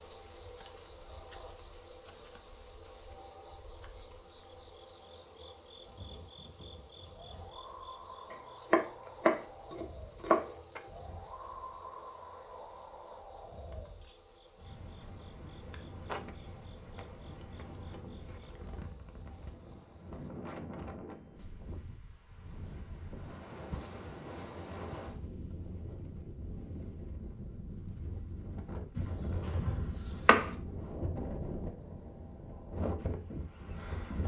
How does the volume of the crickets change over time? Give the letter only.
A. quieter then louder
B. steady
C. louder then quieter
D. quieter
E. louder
D.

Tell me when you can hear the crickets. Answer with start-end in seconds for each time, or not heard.
0.0-20.3.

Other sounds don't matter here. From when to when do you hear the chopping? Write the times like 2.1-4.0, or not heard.
8.3-10.4, 28.9-30.4.